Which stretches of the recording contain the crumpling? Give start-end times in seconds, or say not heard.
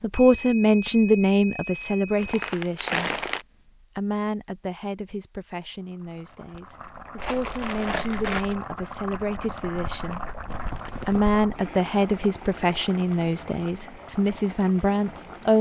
2.2-3.5, 7.2-8.6, 10.4-11.3.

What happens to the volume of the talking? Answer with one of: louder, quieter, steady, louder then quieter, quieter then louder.
quieter then louder.